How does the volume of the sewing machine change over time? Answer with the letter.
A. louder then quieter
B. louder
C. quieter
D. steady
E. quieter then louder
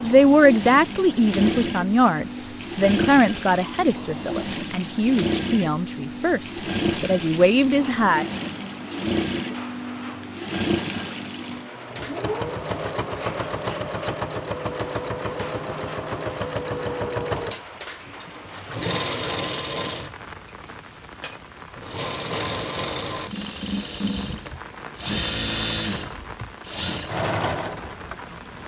D.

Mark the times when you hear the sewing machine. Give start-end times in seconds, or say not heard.
0.0-28.6.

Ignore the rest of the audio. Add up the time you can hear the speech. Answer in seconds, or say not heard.
8 s.